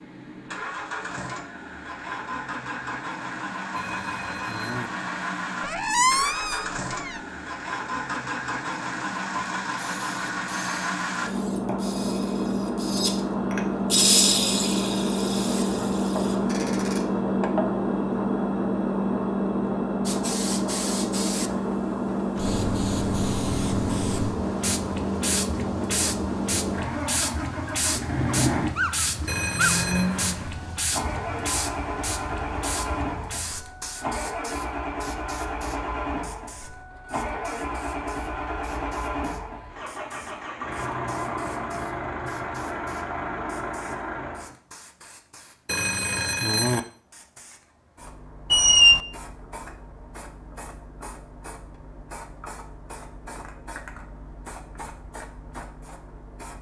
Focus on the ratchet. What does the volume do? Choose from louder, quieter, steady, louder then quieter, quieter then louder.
louder then quieter.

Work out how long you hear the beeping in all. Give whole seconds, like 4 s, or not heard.
3 s.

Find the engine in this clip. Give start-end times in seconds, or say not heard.
0.0-44.5.